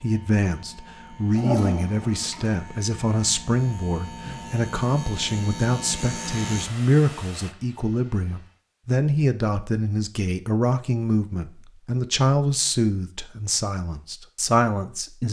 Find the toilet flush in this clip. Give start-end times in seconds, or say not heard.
1.3-2.5.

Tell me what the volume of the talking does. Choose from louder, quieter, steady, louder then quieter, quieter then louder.
steady.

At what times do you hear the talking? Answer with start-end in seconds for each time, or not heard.
0.0-15.2.